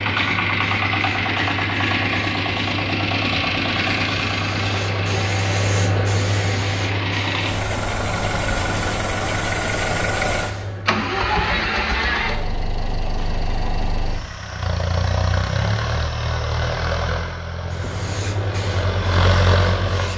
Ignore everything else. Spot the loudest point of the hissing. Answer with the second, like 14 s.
6 s.